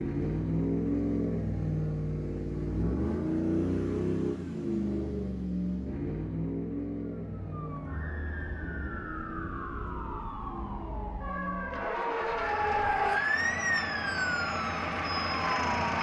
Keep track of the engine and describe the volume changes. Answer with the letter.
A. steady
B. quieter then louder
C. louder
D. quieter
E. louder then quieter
B.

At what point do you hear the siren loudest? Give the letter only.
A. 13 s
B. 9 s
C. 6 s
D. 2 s
A.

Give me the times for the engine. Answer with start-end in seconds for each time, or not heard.
0.0-15.9.